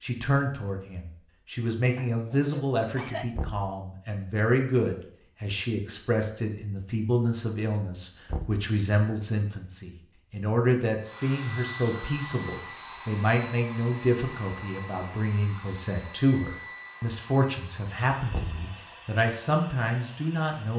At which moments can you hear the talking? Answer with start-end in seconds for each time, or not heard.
0.0-20.7.